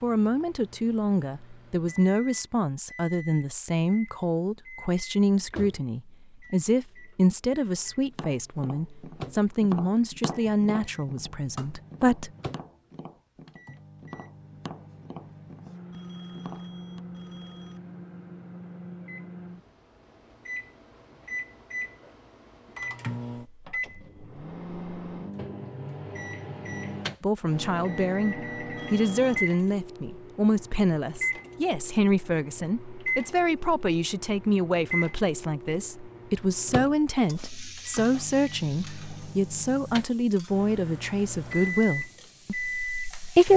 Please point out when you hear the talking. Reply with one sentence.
You can hear the talking from 0.0 to 12.3 s and from 27.2 to 43.5 s.